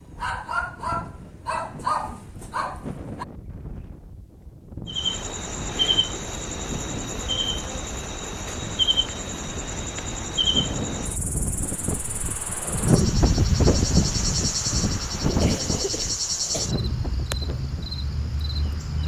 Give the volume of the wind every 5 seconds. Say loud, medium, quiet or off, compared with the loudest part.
quiet, quiet, loud, medium.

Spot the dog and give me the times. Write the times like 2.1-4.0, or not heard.
0.1-3.2.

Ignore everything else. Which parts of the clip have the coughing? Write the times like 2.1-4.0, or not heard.
15.4-16.7.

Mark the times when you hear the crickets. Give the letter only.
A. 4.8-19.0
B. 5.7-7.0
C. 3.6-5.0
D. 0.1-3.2
A.